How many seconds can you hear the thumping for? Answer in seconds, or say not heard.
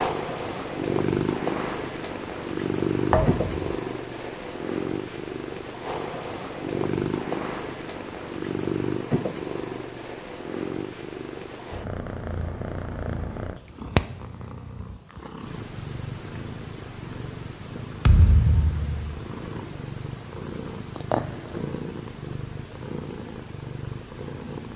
2 s.